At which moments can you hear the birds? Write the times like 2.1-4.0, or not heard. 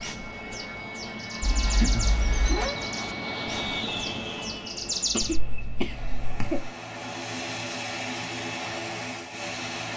0.0-5.4.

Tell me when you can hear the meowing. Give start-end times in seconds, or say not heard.
1.4-2.8, 5.2-6.7.